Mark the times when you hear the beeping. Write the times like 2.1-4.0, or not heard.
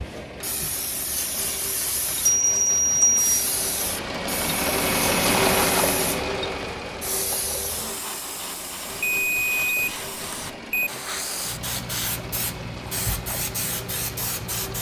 2.2-3.4, 9.0-10.9.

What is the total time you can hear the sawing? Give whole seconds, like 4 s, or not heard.
not heard.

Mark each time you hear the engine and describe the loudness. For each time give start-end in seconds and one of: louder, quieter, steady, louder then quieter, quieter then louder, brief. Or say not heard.
0.0-14.7 louder then quieter.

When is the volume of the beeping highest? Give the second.
3 s.